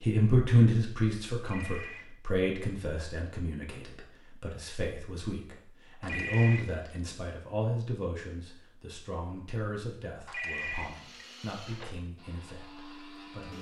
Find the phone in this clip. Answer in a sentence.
The phone can be heard from 1.4 to 2.0 s, from 6.0 to 7.0 s and from 10.2 to 12.0 s.